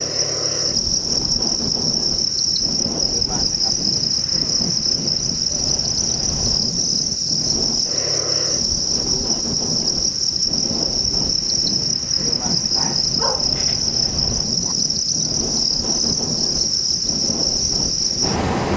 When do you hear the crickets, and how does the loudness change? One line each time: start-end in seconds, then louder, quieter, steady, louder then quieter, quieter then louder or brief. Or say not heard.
0.0-18.7 steady.